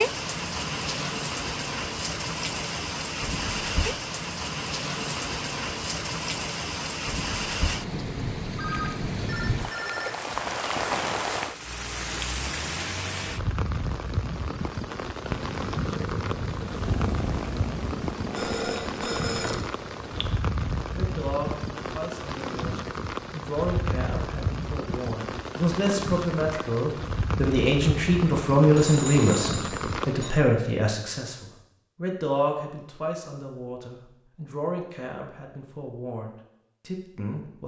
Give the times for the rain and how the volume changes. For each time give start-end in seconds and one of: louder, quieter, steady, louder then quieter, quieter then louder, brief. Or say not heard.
0.0-30.3 steady.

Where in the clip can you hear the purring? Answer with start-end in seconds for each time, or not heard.
15.2-20.4.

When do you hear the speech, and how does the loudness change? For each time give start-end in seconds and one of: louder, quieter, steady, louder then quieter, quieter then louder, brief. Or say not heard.
20.9-37.6 louder then quieter.